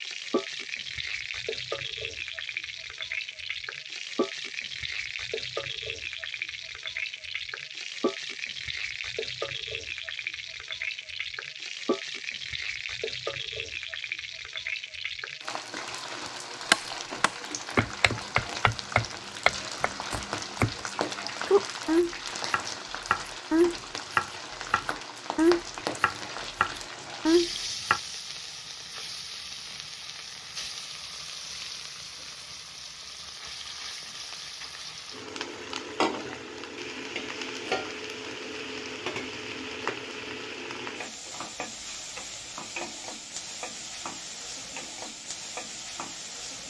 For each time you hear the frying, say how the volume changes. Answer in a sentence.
You can hear the frying from 0.0 to 46.6 s, at a steady volume.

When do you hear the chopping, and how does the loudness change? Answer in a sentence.
You can hear the chopping from 16.7 to 20.9 s, getting louder then quieter; and from 21.4 to 28.0 s, at a steady volume.